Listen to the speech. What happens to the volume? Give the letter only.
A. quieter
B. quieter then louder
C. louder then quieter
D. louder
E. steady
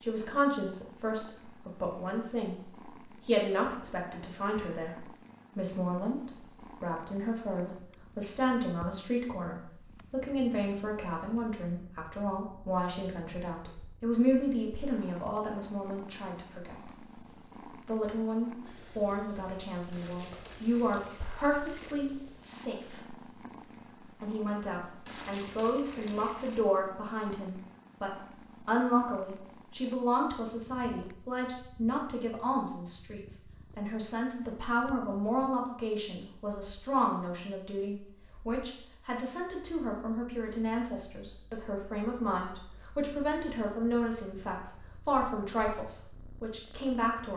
E.